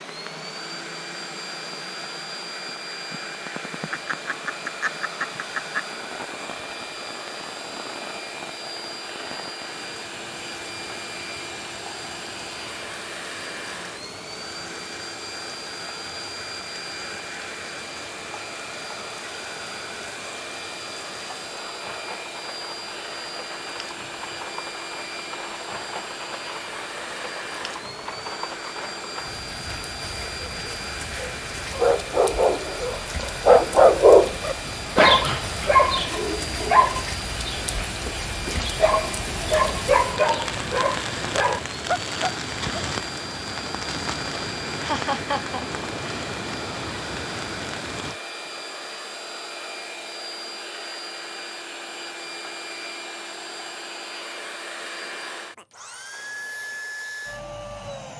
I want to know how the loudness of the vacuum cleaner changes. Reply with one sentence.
The volume of the vacuum cleaner stays about the same.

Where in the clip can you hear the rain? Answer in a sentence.
The rain can be heard from 0.0 to 48.2 s.